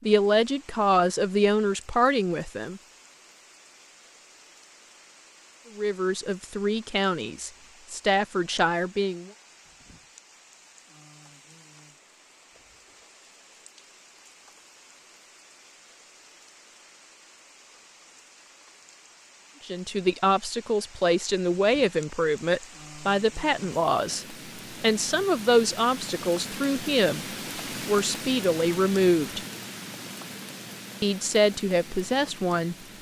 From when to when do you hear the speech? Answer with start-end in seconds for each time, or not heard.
0.0-2.8, 5.8-9.3, 19.6-27.2, 27.9-29.4, 31.0-32.8.